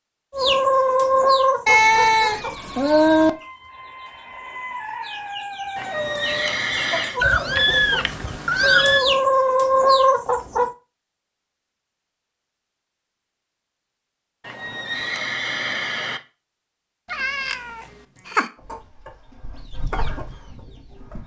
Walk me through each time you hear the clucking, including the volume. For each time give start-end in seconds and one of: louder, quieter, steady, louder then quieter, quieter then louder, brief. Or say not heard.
0.3-10.7 quieter then louder
18.6-21.2 brief.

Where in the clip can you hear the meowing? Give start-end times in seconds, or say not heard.
1.6-3.3, 7.2-9.1, 17.1-18.5.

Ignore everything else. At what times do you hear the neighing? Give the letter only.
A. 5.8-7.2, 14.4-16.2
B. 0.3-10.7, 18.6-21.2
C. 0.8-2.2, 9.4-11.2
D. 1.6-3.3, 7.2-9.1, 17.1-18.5
A.